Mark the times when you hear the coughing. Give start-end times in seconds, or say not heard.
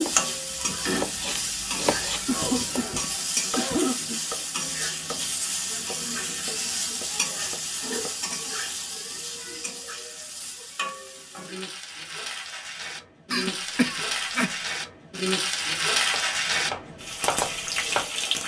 2.2-4.2, 13.3-14.5.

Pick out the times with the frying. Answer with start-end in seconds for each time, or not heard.
0.0-18.4.